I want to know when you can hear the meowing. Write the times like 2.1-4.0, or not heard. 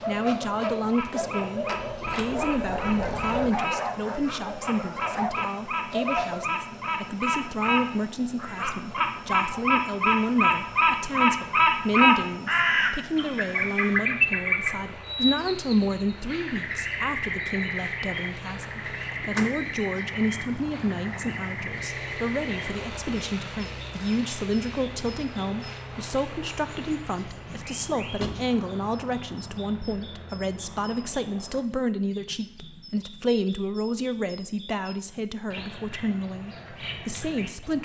not heard.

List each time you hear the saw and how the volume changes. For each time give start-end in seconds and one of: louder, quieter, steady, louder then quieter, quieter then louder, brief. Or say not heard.
not heard.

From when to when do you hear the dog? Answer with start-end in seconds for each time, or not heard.
0.0-6.5.